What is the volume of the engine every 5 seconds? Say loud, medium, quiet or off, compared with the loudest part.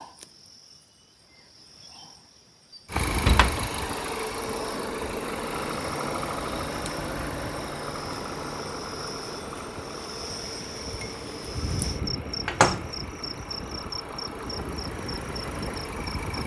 loud, loud, medium, loud.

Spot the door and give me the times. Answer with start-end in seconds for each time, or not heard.
3.1-3.6, 12.4-12.8.